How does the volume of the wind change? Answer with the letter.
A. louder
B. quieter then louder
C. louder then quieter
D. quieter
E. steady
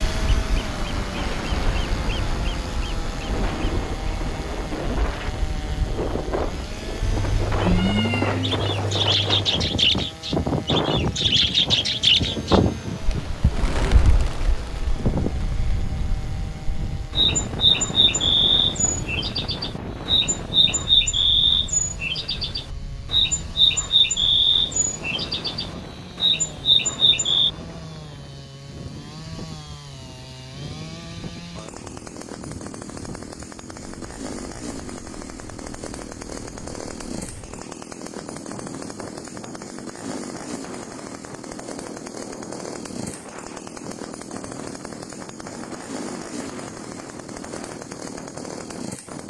D.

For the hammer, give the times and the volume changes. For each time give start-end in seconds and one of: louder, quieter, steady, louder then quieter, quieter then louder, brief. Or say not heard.
not heard.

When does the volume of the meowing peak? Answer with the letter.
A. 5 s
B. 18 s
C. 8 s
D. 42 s
C.